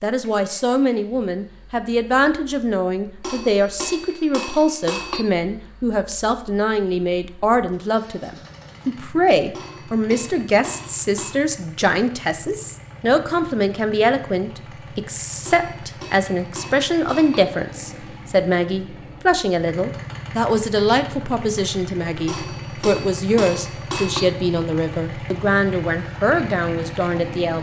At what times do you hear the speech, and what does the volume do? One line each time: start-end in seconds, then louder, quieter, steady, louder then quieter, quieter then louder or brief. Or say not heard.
0.0-27.5 steady.